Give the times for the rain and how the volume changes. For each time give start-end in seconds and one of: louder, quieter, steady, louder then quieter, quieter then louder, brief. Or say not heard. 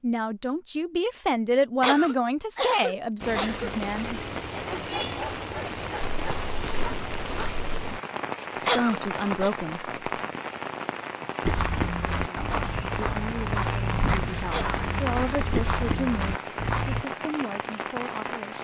3.2-18.5 steady.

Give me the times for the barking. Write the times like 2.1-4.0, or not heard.
4.7-7.5.